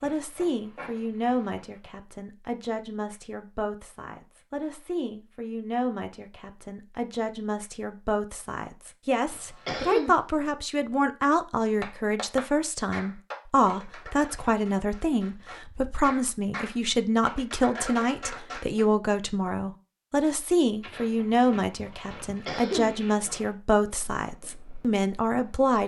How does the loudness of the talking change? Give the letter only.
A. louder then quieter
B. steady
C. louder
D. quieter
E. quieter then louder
C.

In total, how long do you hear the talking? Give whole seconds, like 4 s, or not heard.
26 s.